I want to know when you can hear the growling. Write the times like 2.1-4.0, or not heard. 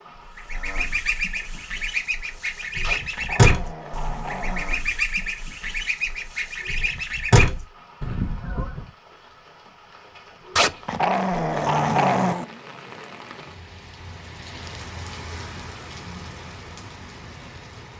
2.8-4.8, 10.6-12.4.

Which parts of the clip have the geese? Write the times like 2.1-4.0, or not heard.
0.3-8.8.